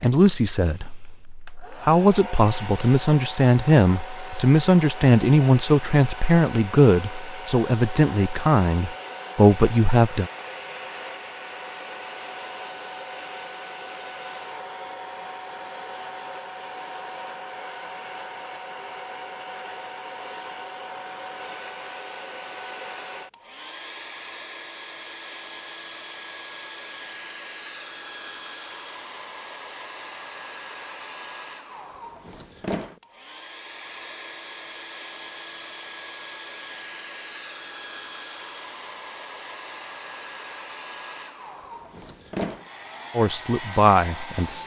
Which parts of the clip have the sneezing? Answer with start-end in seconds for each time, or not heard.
not heard.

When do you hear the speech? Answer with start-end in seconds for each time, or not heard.
0.0-10.3, 43.1-44.6.